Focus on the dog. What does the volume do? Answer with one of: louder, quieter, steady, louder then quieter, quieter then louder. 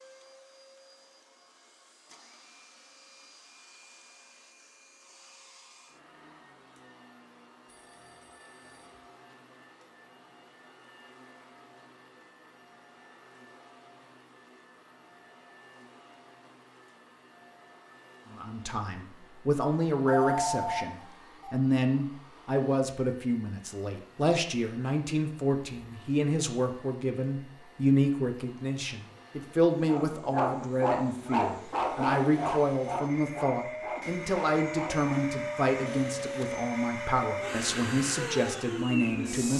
quieter.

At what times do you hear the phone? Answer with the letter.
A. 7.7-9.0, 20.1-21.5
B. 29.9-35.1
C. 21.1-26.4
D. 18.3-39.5
A.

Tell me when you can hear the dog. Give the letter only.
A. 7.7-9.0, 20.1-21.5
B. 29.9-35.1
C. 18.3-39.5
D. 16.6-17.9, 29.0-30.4
B.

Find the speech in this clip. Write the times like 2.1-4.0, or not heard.
18.3-39.5.